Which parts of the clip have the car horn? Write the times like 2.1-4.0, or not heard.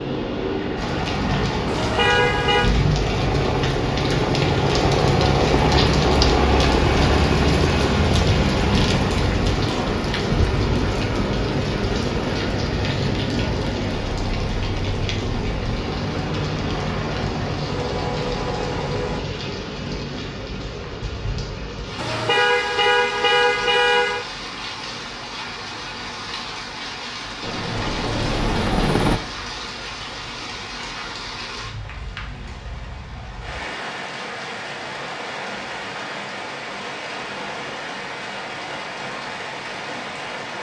1.6-2.7, 21.9-24.2.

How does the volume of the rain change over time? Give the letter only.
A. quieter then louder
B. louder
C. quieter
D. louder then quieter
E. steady
C.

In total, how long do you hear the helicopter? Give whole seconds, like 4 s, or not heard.
21 s.